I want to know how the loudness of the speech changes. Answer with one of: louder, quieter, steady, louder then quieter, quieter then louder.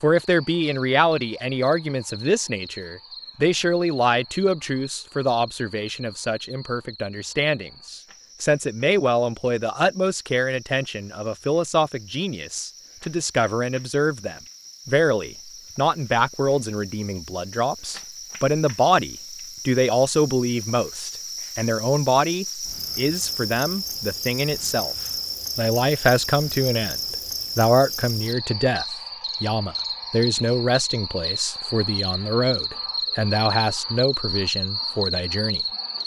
steady.